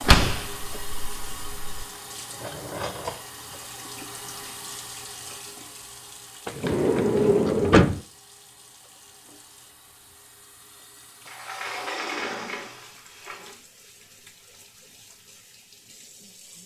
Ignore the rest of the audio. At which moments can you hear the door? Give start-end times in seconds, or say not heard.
0.0-1.9, 6.5-8.0, 11.2-13.6.